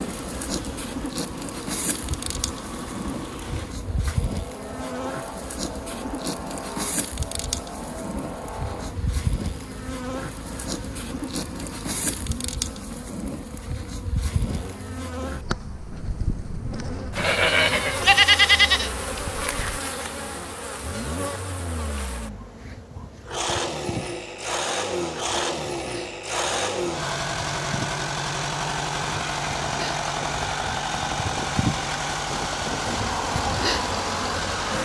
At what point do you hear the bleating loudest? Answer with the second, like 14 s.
18 s.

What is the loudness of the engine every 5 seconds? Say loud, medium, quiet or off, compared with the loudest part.
medium, medium, quiet, quiet, medium, loud, loud.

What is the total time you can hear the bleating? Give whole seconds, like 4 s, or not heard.
3 s.